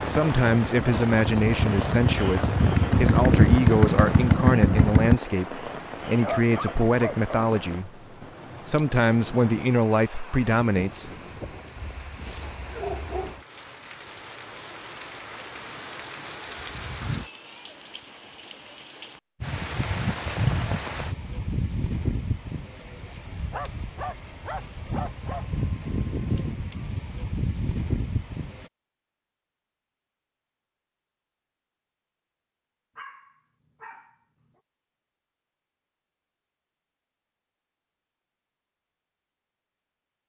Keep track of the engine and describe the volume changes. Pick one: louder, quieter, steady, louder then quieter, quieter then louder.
louder.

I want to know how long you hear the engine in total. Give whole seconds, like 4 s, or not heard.
5 s.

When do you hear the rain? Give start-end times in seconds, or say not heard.
0.0-28.7.